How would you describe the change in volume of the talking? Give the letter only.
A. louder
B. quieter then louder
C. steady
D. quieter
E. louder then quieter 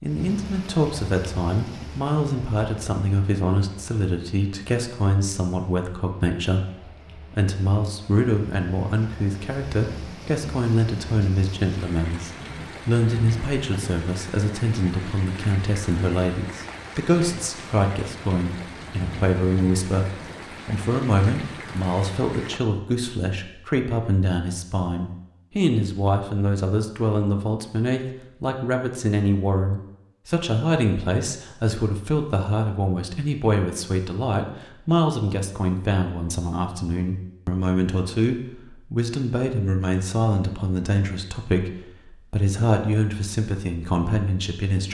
C.